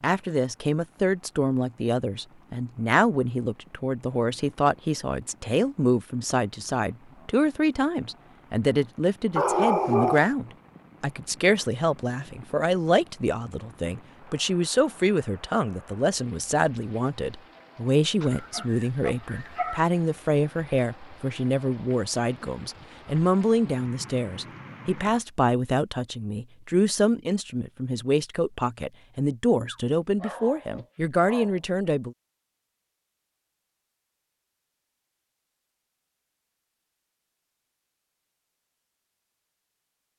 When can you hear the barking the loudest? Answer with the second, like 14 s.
10 s.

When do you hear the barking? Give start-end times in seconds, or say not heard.
9.3-10.3, 18.2-19.8, 29.6-31.6.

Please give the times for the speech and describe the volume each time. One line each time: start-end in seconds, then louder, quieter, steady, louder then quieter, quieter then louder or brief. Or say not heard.
0.0-32.1 steady.